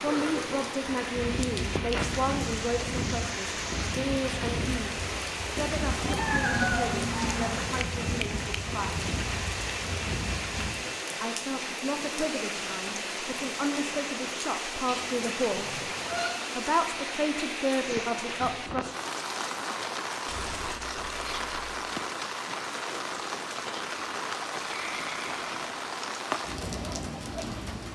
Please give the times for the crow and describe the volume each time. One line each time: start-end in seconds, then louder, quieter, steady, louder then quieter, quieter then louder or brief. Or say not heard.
0.8-10.7 steady.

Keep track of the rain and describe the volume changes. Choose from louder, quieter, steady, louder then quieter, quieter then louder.
steady.